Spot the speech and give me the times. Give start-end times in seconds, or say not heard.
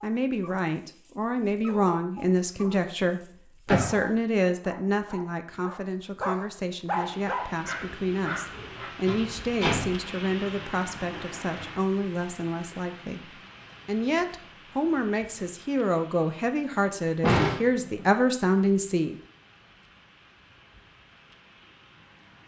0.0-19.1.